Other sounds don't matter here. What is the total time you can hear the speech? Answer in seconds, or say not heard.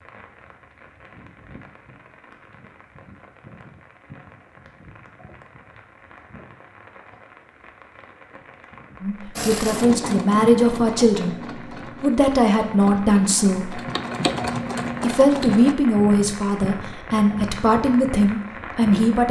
8 s.